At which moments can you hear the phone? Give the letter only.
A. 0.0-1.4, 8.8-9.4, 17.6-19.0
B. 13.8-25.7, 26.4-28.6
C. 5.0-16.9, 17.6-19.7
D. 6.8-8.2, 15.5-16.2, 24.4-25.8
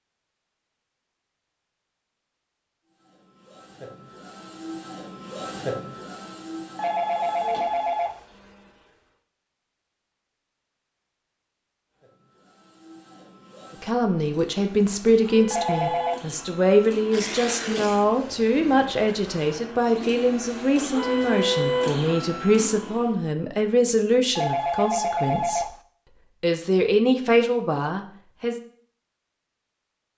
D.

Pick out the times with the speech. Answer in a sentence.
You can hear the speech from 13.8 to 25.7 s and from 26.4 to 28.6 s.